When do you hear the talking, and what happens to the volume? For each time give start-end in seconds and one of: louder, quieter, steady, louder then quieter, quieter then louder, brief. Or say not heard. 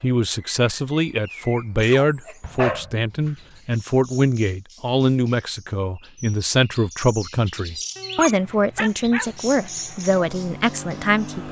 0.0-11.4 steady.